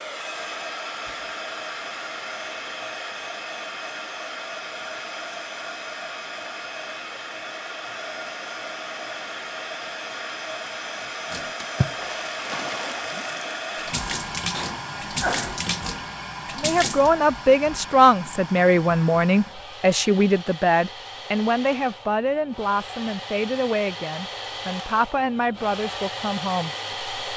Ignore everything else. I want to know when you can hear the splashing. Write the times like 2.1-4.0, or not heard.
11.3-17.1.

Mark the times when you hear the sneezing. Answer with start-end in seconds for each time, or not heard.
14.5-15.7.